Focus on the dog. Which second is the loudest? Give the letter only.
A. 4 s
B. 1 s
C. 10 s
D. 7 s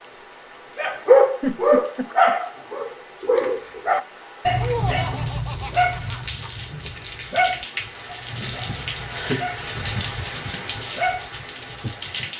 B.